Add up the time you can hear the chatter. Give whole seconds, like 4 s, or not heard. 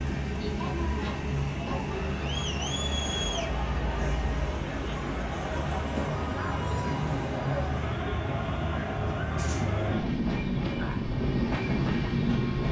10 s.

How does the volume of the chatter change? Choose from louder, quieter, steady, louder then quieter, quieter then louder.
steady.